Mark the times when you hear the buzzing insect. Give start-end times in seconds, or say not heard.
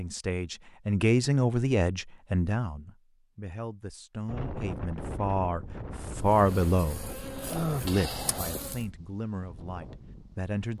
6.2-8.8.